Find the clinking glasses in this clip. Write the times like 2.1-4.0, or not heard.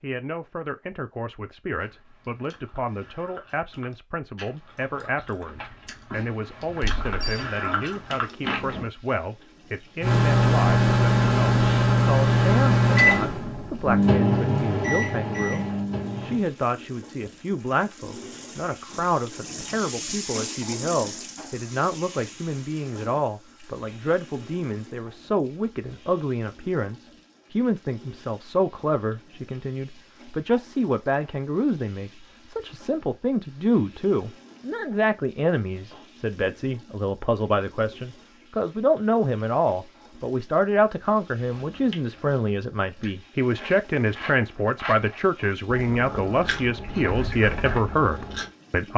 not heard.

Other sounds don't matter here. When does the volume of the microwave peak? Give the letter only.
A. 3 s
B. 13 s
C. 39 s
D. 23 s
B.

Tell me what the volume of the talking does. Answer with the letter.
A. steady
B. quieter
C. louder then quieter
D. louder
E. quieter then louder
D.